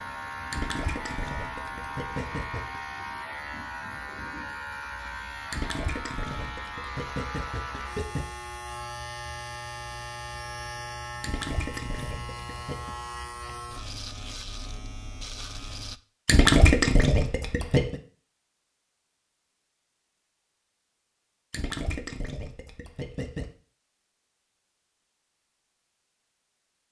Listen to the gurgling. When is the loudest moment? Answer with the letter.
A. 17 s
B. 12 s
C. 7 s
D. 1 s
A.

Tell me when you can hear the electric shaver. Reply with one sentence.
The electric shaver can be heard from 0.0 to 16.0 s.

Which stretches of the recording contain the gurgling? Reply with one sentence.
You can hear the gurgling from 0.5 to 2.8 s, from 5.5 to 8.2 s, from 11.2 to 12.9 s, from 16.2 to 17.9 s and from 21.5 to 23.4 s.